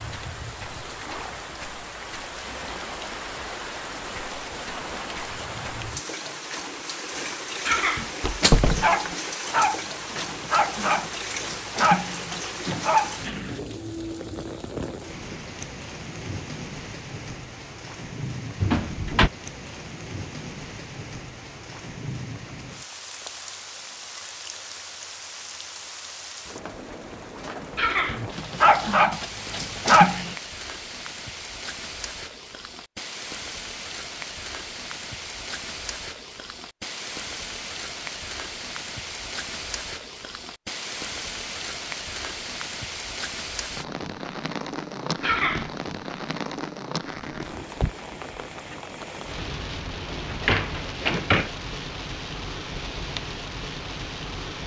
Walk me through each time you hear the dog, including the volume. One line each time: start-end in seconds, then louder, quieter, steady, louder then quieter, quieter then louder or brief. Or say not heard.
8.4-13.6 quieter then louder
28.4-30.4 brief.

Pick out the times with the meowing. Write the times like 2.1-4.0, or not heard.
not heard.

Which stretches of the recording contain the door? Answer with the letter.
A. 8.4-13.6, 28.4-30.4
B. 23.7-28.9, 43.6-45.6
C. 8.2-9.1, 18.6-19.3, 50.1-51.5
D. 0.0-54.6
C.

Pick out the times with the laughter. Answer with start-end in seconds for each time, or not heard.
7.7-8.2, 27.8-28.2, 45.2-45.7.